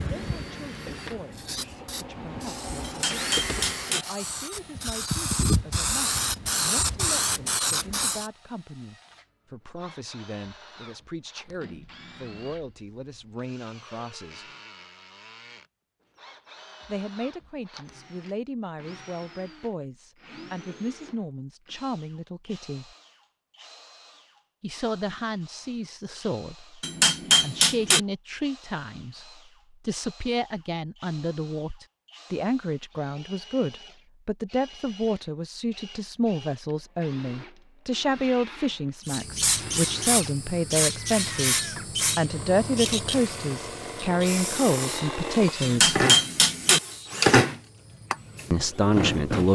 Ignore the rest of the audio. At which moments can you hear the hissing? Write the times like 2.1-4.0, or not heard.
0.0-8.3, 39.0-49.5.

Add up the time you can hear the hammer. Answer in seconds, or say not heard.
4 s.